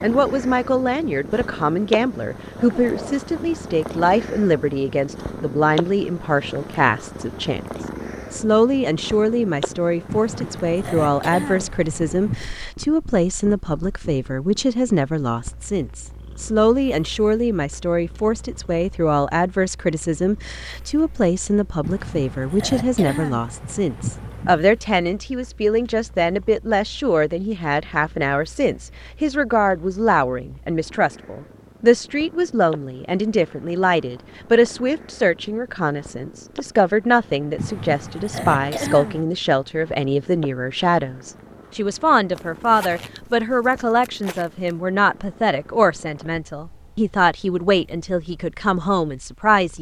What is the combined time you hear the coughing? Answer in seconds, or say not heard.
7 s.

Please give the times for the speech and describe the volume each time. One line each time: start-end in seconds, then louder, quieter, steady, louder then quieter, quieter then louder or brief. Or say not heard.
0.0-7.6 steady
8.3-49.7 steady.